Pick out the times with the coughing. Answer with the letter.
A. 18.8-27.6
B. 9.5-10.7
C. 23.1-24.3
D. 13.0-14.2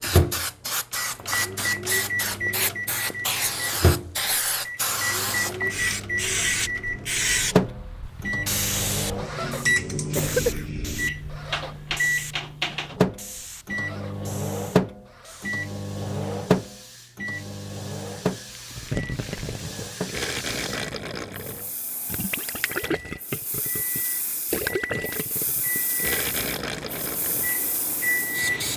B.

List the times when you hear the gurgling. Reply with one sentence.
You can hear the gurgling from 18.8 to 27.6 s.